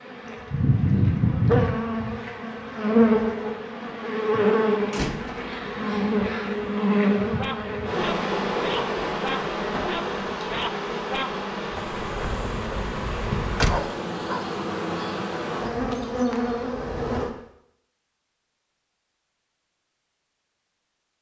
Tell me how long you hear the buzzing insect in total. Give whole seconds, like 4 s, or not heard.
17 s.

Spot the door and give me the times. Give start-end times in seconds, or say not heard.
4.9-5.5, 12.2-13.8.